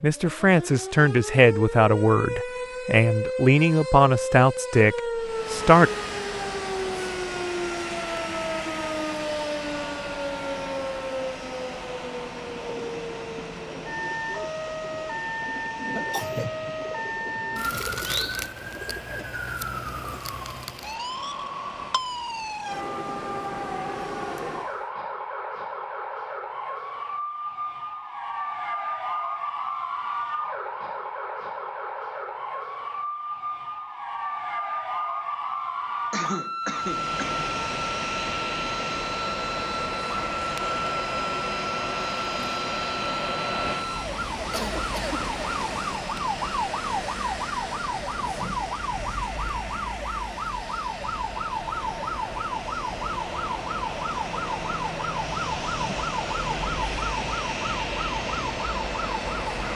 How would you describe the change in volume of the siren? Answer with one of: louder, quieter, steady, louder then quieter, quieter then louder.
steady.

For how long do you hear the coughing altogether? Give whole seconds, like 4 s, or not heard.
3 s.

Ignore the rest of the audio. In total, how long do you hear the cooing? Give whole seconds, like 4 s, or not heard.
8 s.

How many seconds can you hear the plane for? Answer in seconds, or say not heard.
43 s.